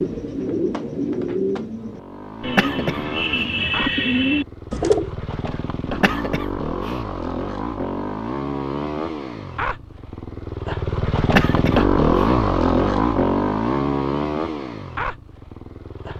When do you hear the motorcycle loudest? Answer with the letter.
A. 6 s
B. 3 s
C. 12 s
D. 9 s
C.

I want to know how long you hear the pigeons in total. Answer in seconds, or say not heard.
5 s.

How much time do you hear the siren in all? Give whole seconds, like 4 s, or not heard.
not heard.